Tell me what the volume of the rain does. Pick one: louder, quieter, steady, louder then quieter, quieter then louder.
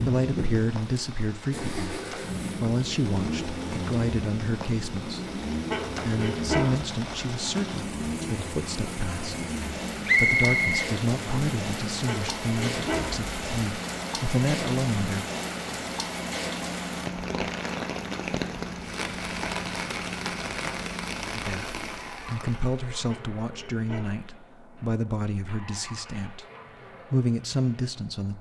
louder.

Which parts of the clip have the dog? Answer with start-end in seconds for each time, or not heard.
5.7-6.8, 12.1-13.2, 23.1-24.2.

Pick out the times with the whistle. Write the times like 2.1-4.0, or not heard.
10.1-11.4.